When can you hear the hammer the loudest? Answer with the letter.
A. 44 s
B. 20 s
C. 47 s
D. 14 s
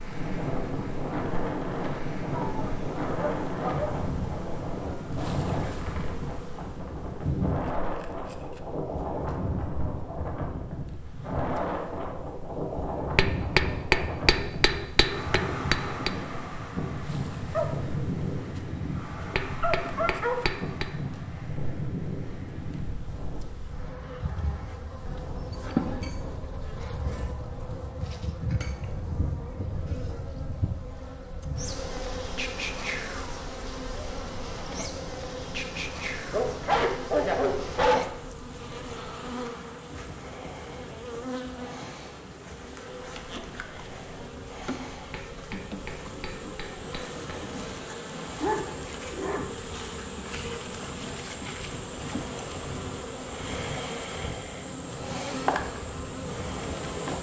D.